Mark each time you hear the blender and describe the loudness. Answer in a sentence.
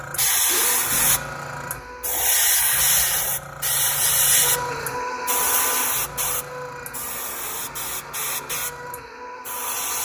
The blender can be heard briefly from 0.0 to 2.3 s; and from 4.4 to 10.0 s, getting quieter.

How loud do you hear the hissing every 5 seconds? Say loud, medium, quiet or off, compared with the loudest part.
loud, medium.